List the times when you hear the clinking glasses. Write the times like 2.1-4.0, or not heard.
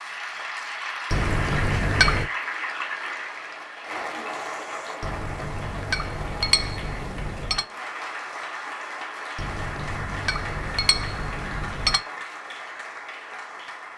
1.1-2.3, 5.0-7.7, 9.3-12.1.